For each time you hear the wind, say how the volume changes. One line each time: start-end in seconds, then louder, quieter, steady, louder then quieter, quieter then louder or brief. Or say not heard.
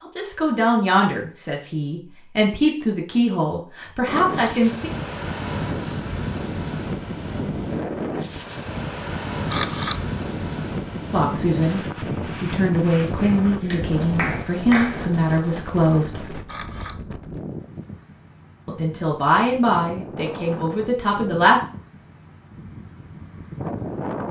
4.0-24.2 quieter.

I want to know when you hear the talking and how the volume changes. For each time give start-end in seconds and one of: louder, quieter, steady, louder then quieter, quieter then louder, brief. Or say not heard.
0.0-4.9 quieter then louder
11.1-16.4 steady
18.6-21.6 brief.